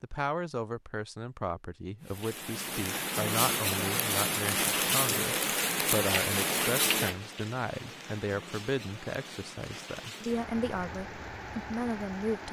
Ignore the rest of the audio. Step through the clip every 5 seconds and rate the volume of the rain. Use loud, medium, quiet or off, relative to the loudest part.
loud, loud, medium.